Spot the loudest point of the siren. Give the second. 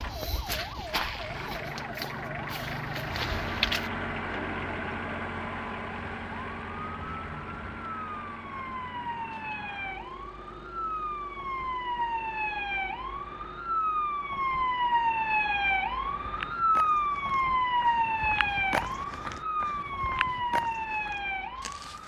17 s.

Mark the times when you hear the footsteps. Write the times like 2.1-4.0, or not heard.
0.0-3.9, 16.2-22.0.